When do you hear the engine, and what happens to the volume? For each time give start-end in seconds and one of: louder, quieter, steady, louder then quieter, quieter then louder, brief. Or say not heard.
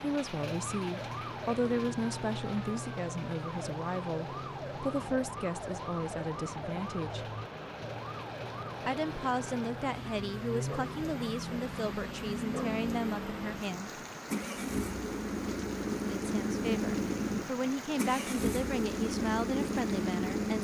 0.0-20.6 louder.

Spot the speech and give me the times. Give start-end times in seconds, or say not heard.
0.0-7.3, 8.8-14.0, 16.1-20.6.